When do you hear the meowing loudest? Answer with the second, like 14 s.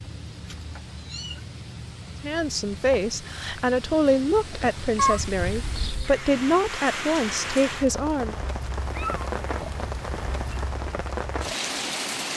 5 s.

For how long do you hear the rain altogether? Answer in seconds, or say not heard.
12 s.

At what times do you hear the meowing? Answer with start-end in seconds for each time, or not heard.
0.5-1.4, 5.0-6.2, 8.8-10.7.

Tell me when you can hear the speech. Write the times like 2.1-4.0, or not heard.
2.2-8.3.